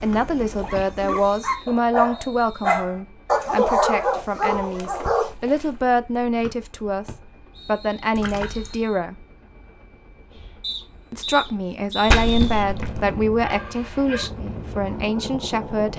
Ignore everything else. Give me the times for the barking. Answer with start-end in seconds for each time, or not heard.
0.0-5.3, 13.3-15.7.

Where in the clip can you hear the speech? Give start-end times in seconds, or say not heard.
0.0-9.2, 11.1-15.9.